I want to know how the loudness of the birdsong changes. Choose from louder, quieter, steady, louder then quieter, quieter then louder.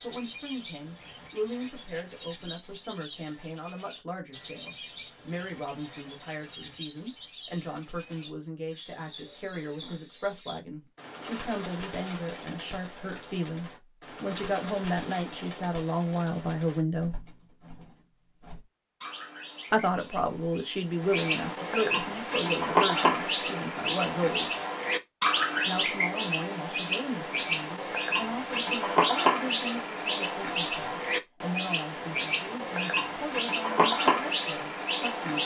louder.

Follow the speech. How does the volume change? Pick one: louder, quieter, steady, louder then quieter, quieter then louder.
louder then quieter.